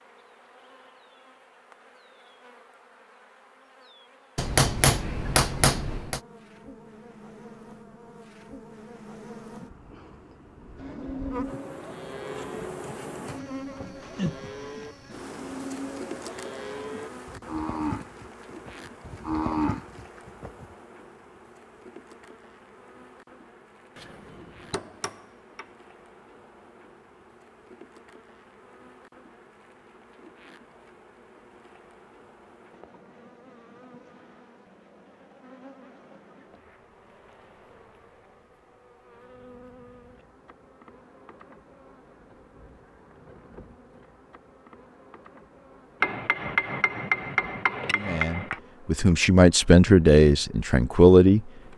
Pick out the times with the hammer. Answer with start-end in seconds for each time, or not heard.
4.3-6.2, 23.9-25.6, 46.0-48.6.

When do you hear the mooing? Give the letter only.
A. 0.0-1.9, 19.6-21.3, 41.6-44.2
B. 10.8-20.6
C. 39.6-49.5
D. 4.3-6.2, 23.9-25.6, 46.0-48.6
B.